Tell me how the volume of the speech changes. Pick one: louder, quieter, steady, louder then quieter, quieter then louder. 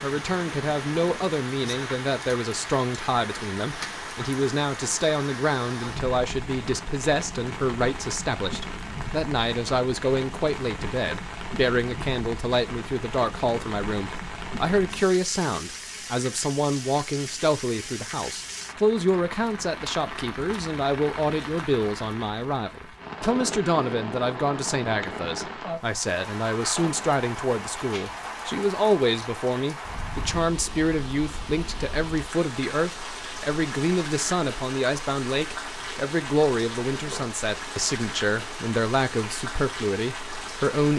steady.